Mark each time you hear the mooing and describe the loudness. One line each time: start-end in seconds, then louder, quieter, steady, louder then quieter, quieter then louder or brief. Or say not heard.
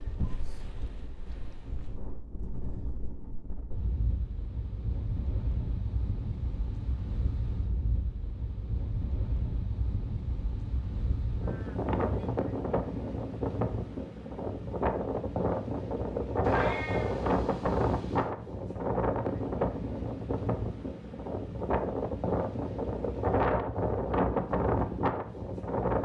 not heard.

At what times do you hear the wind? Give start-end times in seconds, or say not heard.
0.0-26.0.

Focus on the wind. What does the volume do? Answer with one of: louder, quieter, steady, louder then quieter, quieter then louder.
louder.